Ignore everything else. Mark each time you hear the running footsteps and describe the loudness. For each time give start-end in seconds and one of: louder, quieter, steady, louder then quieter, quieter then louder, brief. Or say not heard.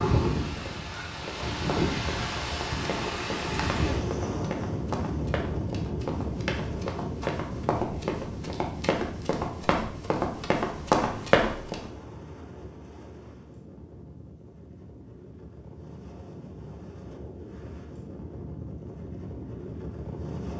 1.2-11.9 louder.